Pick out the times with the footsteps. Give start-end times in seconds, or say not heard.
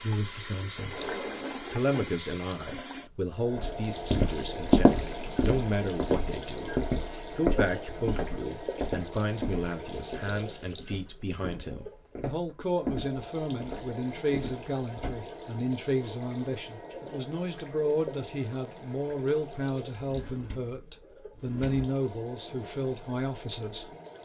3.5-15.2.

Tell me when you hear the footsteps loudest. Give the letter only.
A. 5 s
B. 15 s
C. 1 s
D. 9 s
A.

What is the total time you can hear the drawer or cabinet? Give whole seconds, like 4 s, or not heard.
3 s.